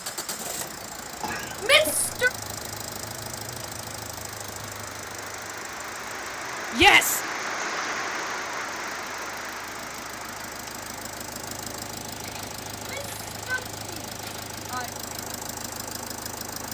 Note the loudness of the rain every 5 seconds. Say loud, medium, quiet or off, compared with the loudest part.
medium, loud, medium, medium.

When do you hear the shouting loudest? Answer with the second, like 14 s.
7 s.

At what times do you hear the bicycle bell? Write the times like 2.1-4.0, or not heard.
not heard.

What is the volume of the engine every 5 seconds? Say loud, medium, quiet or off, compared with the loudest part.
loud, medium, loud, loud.